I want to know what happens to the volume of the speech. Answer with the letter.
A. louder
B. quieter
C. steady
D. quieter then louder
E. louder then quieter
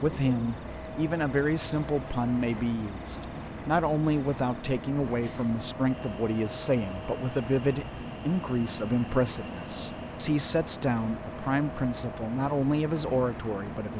C.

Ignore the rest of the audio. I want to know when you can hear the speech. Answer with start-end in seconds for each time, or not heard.
0.0-13.9.